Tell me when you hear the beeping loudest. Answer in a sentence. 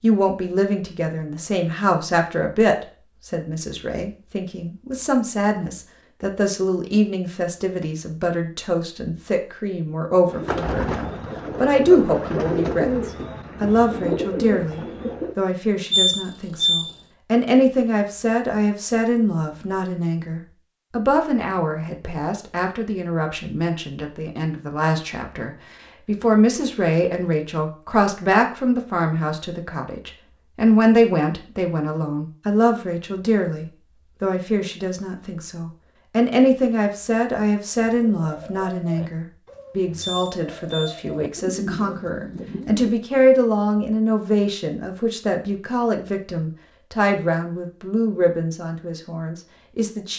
The loudest moment of the beeping is at 16 seconds.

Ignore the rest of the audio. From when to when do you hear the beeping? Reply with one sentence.
The beeping can be heard from 15.9 to 16.9 s and from 40.0 to 41.0 s.